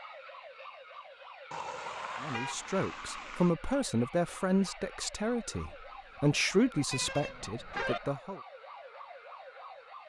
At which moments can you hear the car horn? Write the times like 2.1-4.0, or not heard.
1.5-3.5, 6.9-8.0.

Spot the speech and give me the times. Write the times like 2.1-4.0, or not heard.
2.2-8.4.